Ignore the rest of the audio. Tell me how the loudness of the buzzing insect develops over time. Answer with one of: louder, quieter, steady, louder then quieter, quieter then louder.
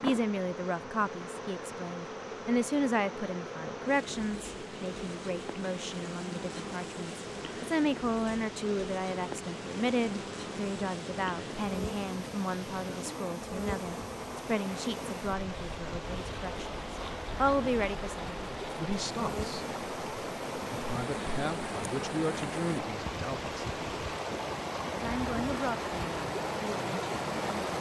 steady.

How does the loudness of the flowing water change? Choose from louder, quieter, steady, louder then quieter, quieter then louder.
louder.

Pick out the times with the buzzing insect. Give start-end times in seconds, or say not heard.
0.0-22.8.